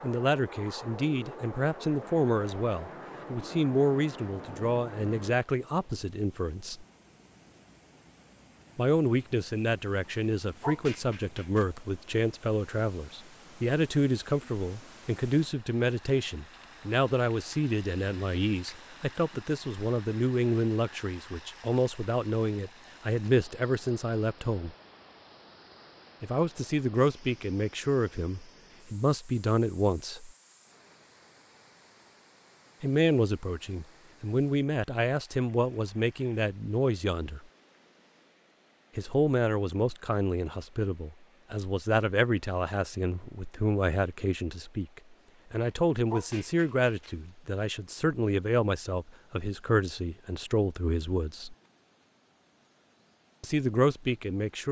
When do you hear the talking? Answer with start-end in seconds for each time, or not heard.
0.0-6.8, 8.8-24.8, 26.2-30.3, 32.8-37.5, 39.0-51.5, 53.4-54.6.